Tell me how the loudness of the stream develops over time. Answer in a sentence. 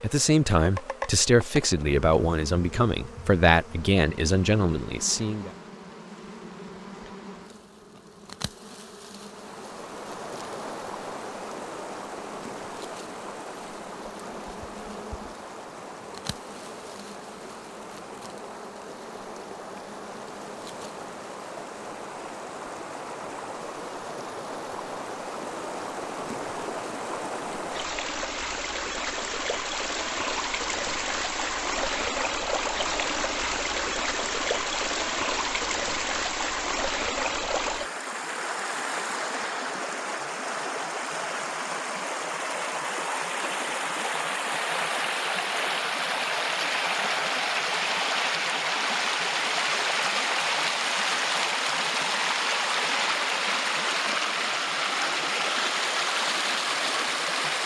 The loudness of the stream goes up.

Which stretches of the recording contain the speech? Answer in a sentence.
You can hear the speech from 0.0 to 5.5 s.